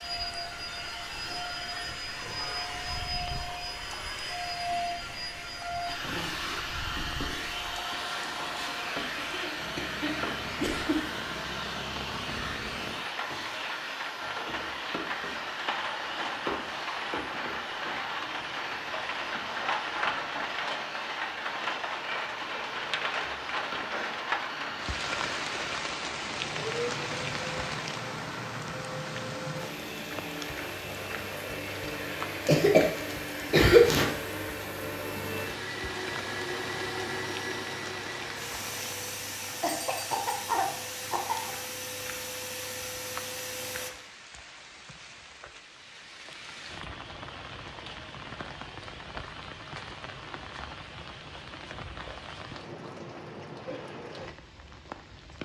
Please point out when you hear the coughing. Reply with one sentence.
The coughing can be heard from 8.9 to 10.9 s, from 32.5 to 34.0 s and from 39.6 to 41.5 s.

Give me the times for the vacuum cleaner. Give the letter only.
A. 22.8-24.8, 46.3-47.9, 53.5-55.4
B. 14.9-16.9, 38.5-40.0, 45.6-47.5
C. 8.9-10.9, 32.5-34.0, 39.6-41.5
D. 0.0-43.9
D.